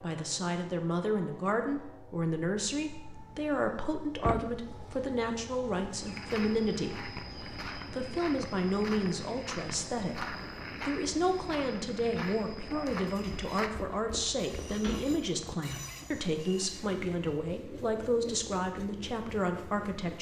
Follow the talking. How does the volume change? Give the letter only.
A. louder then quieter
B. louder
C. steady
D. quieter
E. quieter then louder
C.